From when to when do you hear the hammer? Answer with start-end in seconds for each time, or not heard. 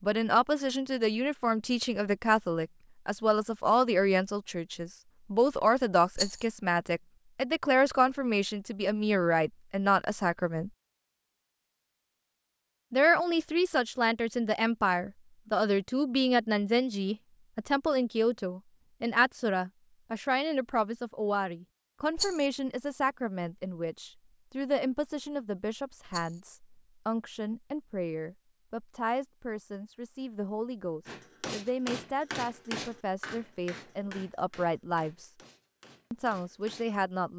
31.1-36.9.